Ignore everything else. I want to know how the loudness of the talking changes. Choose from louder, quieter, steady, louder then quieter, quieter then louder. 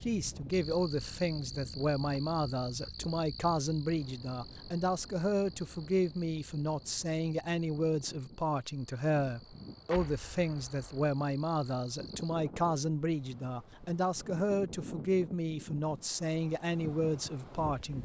steady.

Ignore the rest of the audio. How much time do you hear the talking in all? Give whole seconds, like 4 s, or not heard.
18 s.